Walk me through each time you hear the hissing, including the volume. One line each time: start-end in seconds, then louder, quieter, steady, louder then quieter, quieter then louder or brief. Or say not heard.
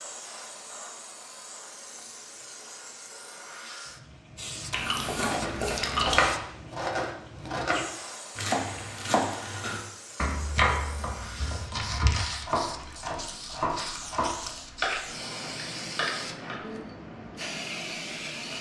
0.0-18.5 louder.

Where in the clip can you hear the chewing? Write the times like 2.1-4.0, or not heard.
4.7-6.3, 12.7-14.8.